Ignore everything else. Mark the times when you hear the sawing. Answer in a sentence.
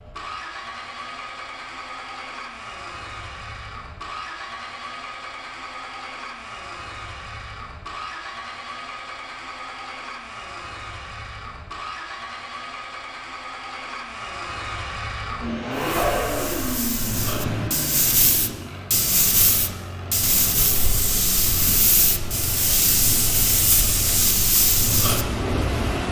The sawing can't be heard in this clip.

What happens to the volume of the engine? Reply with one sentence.
The volume of the engine goes up, then down.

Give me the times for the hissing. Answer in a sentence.
The hissing can be heard from 15.8 to 26.0 s.